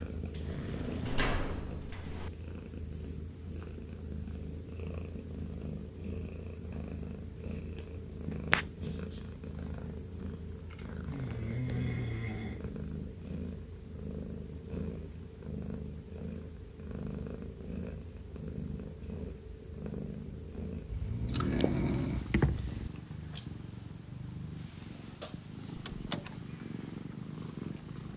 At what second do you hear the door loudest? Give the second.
1 s.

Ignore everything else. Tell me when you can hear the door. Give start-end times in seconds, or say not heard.
0.3-2.3, 25.8-26.4.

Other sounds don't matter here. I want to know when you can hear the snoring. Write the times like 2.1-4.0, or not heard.
0.4-1.6, 11.1-12.8, 20.9-22.9.